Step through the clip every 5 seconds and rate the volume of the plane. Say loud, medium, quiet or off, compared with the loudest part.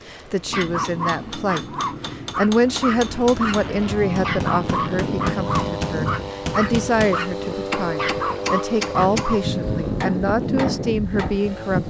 medium, loud, loud.